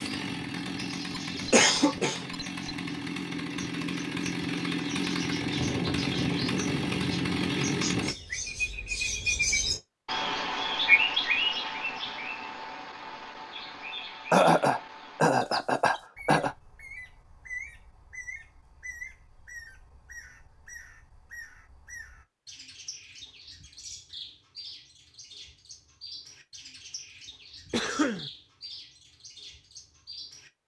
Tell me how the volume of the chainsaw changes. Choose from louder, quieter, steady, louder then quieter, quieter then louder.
louder.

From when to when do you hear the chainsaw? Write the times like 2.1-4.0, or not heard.
0.0-8.2.